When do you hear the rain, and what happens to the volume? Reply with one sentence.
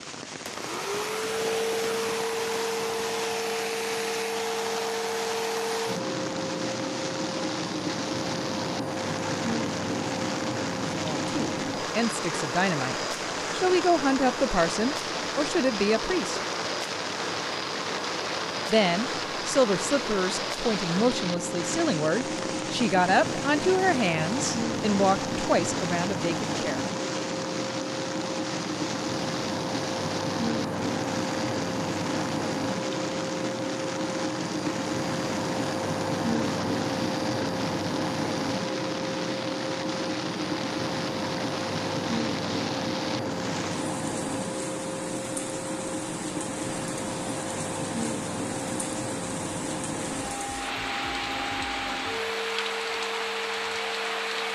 The rain can be heard from 0.0 to 54.4 s, at a steady volume.